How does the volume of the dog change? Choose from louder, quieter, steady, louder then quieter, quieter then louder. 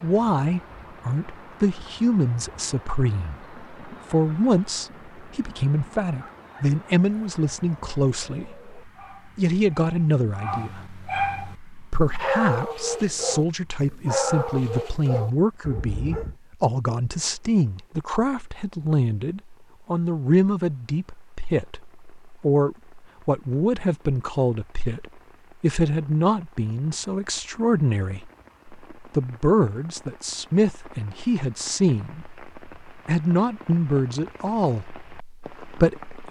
louder.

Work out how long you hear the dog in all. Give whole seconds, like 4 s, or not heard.
10 s.